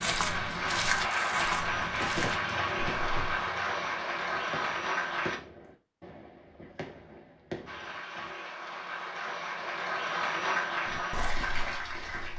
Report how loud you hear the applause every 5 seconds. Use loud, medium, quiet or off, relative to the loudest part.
loud, medium, loud.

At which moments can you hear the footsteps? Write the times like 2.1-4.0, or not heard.
0.0-3.1, 10.8-12.3.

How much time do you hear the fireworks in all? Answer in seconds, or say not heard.
7 s.